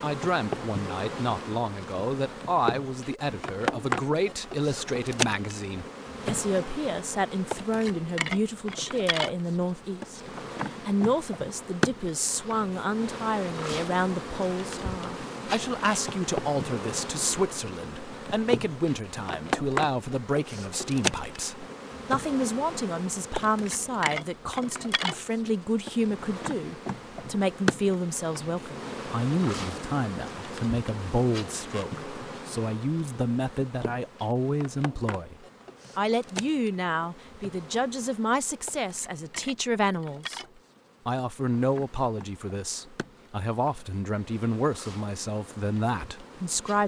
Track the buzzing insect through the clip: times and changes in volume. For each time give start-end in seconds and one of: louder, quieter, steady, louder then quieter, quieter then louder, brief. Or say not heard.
0.0-46.8 quieter.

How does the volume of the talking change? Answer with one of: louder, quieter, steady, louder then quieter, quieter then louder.
steady.